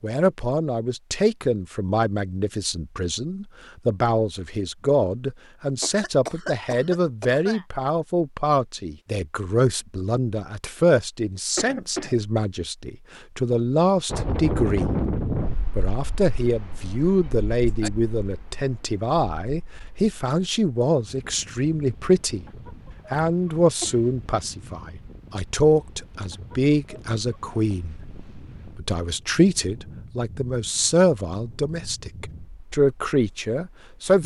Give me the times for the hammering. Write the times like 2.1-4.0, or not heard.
not heard.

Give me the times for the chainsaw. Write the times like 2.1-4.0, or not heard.
not heard.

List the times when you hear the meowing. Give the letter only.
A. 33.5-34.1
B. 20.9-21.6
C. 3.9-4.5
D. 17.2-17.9
D.